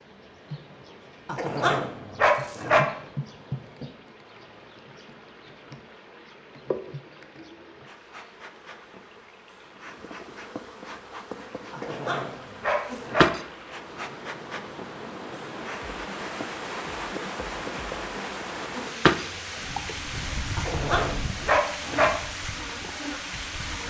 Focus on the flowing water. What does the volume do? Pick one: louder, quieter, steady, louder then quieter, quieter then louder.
louder.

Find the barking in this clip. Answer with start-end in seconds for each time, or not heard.
1.2-2.9, 11.7-13.3, 20.6-22.1.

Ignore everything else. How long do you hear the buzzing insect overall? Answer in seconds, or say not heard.
24 s.